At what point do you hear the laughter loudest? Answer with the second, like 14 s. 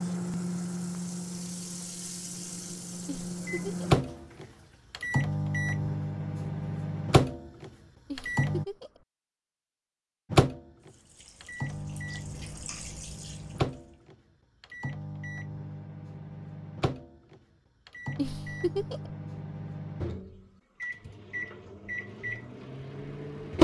19 s.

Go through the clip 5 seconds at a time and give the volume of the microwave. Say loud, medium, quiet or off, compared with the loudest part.
loud, loud, loud, medium, loud.